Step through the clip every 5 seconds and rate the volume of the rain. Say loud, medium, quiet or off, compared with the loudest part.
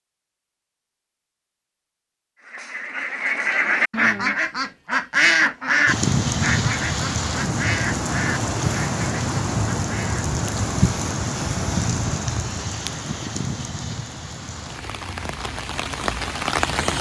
off, loud, loud, loud.